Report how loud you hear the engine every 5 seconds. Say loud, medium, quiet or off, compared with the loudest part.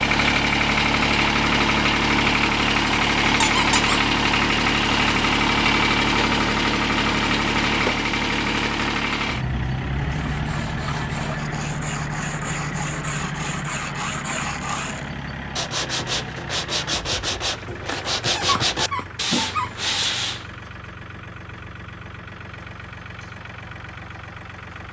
loud, loud, medium, quiet, quiet.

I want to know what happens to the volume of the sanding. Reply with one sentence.
The volume of the sanding goes up.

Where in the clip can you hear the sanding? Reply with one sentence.
You can hear the sanding from 10.2 to 20.4 s.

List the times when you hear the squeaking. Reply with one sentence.
The squeaking can be heard from 3.4 to 4.0 s and from 18.4 to 19.7 s.